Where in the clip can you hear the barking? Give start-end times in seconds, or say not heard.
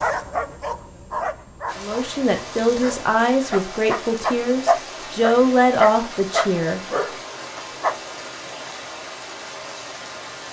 0.0-8.0.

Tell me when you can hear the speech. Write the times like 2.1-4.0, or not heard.
1.8-6.8.